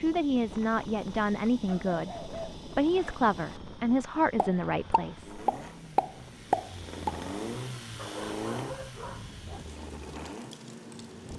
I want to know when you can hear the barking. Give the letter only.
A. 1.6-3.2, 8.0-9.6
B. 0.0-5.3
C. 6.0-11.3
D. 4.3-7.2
A.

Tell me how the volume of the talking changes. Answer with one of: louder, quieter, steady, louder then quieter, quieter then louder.
steady.